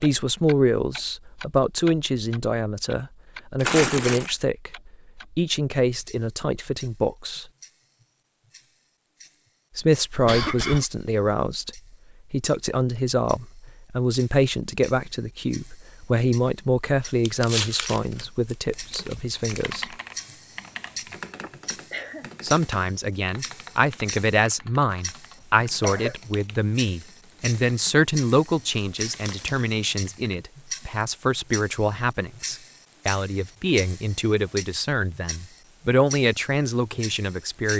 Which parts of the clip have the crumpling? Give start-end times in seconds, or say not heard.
3.6-4.3, 17.2-19.6, 28.8-29.8.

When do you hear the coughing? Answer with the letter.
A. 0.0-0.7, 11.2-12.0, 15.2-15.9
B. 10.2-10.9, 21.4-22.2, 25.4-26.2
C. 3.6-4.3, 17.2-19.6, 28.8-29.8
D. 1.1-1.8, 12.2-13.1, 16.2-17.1
B.